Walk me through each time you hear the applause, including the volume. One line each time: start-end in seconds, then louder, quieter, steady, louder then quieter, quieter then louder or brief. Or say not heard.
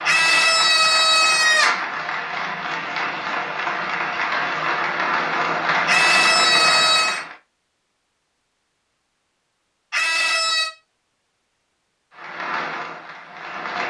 0.0-7.3 louder
12.2-13.8 brief.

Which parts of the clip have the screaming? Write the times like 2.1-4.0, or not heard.
0.1-1.9, 5.8-7.2, 9.9-10.7.